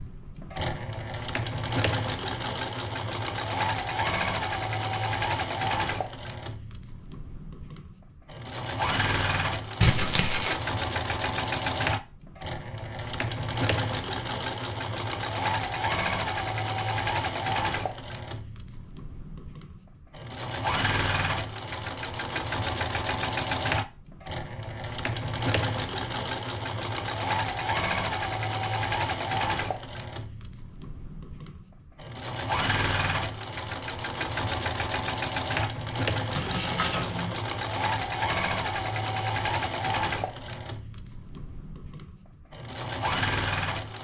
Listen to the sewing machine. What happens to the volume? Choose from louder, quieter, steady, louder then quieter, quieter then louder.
steady.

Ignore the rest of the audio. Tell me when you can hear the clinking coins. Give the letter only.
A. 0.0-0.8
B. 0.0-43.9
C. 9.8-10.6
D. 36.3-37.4
D.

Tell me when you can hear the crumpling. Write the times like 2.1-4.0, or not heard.
9.8-10.6.